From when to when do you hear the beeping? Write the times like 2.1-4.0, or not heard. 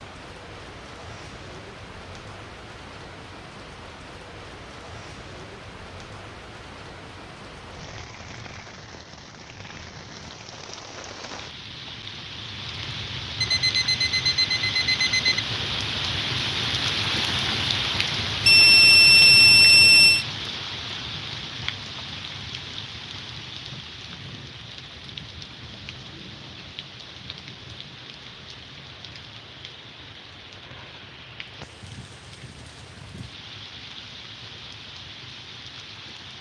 13.4-15.4, 18.4-20.2.